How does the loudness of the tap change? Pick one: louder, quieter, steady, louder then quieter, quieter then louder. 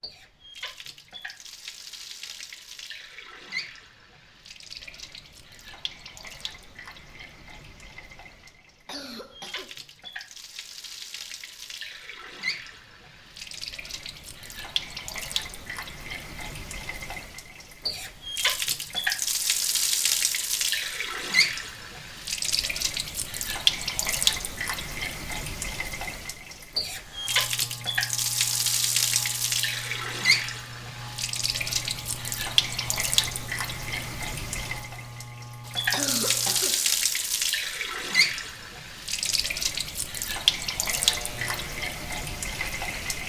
louder.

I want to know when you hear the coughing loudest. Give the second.
36 s.